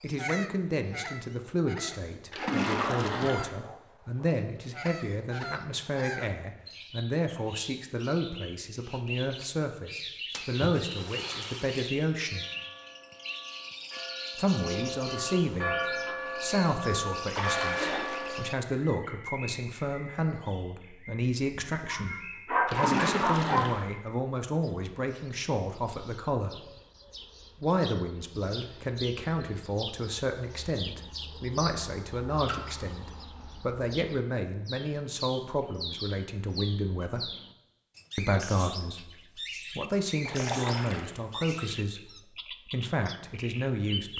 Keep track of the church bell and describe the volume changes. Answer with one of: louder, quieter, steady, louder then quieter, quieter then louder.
louder.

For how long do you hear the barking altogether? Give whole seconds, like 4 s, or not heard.
2 s.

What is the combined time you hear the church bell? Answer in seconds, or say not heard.
6 s.